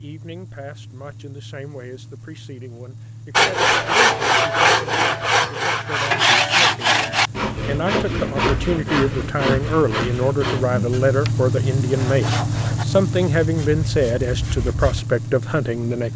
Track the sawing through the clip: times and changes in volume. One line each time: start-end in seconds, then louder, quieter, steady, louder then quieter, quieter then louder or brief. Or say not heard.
3.4-15.1 quieter.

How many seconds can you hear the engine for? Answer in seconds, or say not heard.
16 s.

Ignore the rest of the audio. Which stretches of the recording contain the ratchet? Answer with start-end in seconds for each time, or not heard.
not heard.